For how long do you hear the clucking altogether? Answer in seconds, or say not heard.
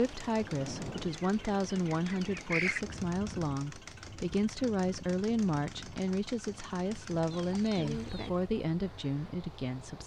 3 s.